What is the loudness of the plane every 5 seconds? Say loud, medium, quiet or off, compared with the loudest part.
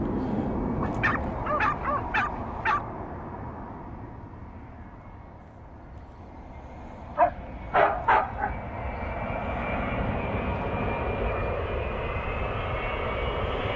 loud, medium, loud.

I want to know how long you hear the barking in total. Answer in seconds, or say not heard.
3 s.